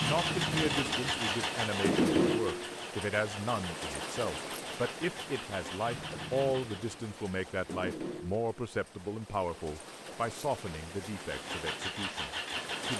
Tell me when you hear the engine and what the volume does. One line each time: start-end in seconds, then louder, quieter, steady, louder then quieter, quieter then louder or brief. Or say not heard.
0.0-7.1 quieter
11.2-12.9 brief.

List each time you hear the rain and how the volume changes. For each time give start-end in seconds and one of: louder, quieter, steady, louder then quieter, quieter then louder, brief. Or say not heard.
0.0-12.9 quieter.